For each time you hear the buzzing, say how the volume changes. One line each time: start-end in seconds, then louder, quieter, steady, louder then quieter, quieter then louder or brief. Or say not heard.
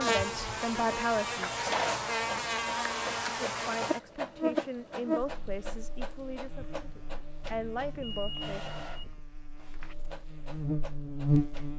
0.0-11.7 quieter then louder.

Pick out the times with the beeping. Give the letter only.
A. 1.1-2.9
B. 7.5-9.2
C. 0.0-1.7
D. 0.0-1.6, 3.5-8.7
B.